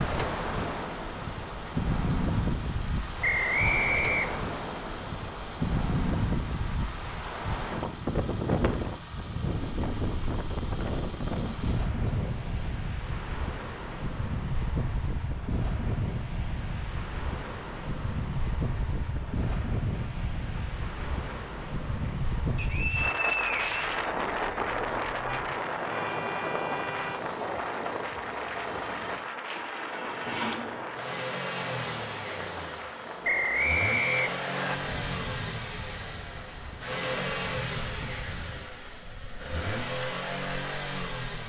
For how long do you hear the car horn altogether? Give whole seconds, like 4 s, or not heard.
2 s.